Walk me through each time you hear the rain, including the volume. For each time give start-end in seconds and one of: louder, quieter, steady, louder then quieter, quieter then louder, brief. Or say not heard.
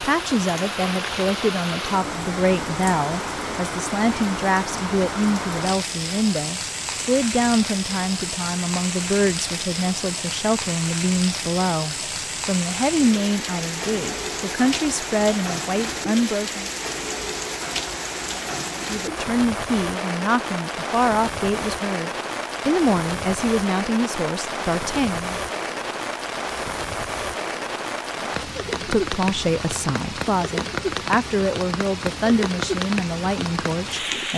0.0-34.3 steady.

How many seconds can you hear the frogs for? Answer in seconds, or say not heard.
not heard.